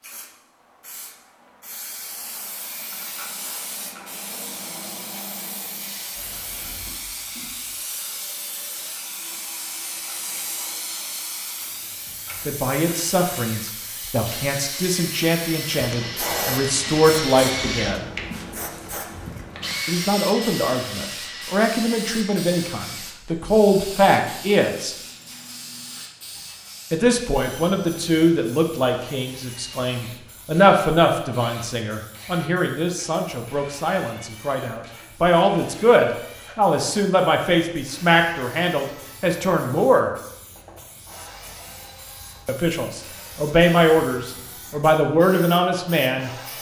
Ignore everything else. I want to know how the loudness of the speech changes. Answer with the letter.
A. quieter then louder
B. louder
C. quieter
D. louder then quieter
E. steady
E.